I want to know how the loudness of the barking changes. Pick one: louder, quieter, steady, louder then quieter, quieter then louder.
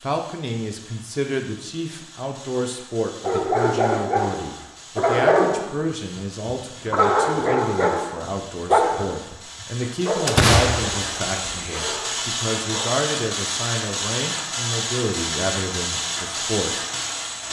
quieter.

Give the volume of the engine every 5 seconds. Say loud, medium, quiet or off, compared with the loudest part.
quiet, quiet, loud, loud.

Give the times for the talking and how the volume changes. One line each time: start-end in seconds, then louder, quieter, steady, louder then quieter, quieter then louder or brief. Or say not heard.
0.0-16.8 steady.